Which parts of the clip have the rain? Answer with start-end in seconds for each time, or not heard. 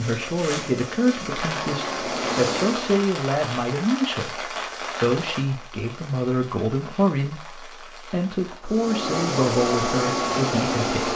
0.0-8.6.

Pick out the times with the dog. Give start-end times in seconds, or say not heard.
not heard.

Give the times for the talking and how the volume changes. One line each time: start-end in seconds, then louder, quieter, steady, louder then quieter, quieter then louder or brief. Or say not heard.
0.0-11.1 steady.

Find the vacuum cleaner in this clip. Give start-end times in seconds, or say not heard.
0.0-3.0, 8.6-11.1.